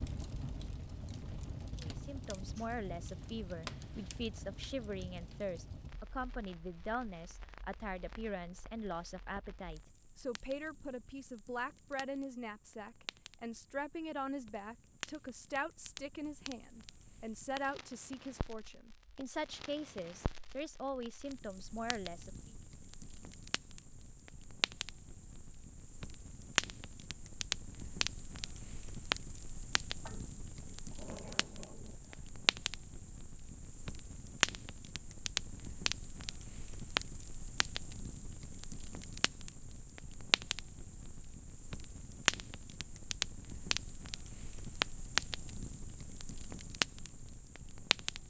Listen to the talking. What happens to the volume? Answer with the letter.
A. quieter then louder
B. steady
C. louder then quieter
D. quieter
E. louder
B.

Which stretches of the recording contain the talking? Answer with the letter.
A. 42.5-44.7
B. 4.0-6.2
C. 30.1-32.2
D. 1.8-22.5
D.